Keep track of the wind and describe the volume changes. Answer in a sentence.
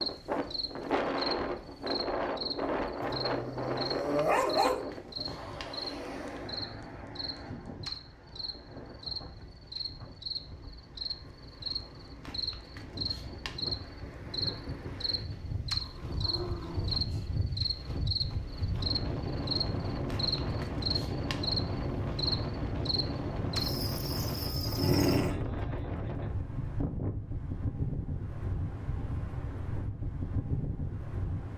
The loudness of the wind goes down, then up.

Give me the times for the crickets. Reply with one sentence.
The crickets can be heard from 0.0 to 25.3 s.